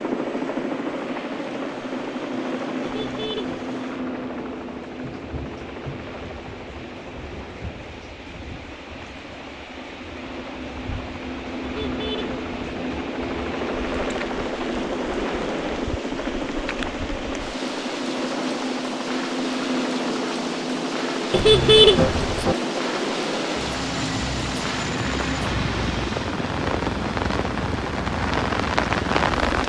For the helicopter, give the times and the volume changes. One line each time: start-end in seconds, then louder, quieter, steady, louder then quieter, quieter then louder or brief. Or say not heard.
0.0-29.6 quieter then louder.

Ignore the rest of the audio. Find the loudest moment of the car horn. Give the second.
22 s.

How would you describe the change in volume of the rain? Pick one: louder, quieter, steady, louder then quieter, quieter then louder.
louder.